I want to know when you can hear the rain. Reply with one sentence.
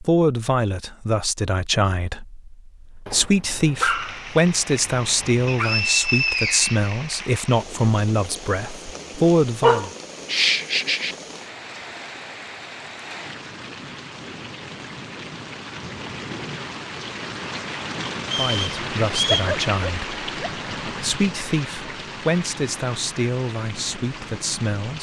You can hear the rain from 3.8 to 24.9 s.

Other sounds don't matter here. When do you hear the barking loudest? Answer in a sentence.
The volume of the barking peaks at 10 seconds.